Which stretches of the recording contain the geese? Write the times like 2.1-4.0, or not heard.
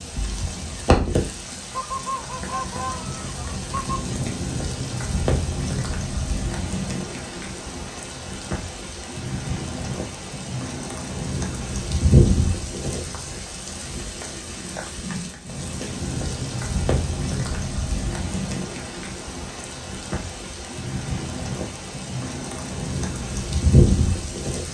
1.7-4.0.